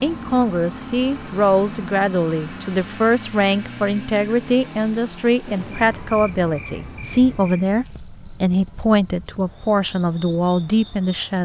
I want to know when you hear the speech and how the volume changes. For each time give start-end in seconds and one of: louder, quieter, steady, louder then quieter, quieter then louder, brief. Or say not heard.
0.0-11.3 steady.